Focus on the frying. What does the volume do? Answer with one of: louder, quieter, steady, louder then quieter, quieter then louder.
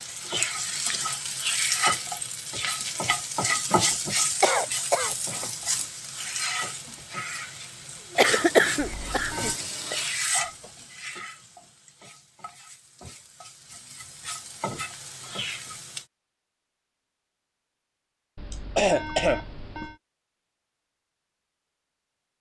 quieter.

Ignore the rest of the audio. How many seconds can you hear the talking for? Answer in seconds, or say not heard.
not heard.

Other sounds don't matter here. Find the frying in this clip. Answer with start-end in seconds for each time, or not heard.
0.0-16.1.